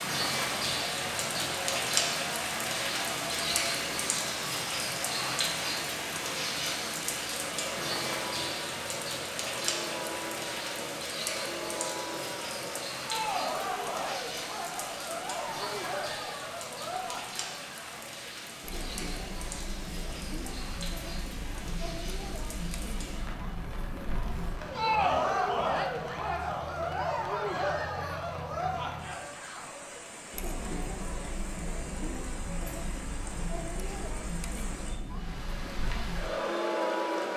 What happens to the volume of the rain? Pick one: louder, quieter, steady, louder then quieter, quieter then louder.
quieter.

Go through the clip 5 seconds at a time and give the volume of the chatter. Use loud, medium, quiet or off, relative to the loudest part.
medium, medium, medium, medium, medium, loud, medium, loud.